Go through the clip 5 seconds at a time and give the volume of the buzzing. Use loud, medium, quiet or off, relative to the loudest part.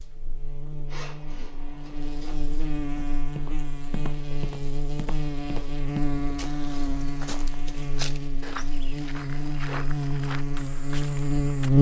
quiet, medium, loud.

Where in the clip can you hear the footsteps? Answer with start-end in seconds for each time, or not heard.
3.0-11.7.